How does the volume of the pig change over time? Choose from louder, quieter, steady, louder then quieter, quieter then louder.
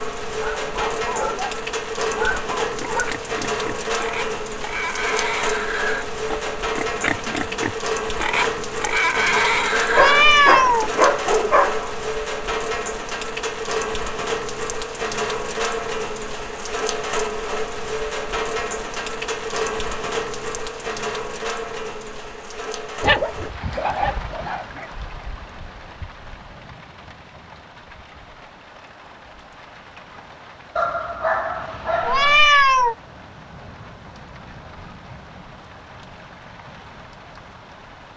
louder.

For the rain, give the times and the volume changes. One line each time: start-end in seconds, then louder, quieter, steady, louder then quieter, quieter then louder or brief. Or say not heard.
0.0-38.1 quieter.